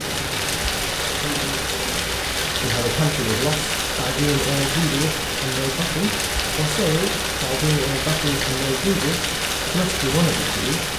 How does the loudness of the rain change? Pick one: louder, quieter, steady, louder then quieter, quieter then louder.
steady.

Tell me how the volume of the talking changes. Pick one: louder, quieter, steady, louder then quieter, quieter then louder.
louder.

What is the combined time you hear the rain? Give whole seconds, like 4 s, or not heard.
11 s.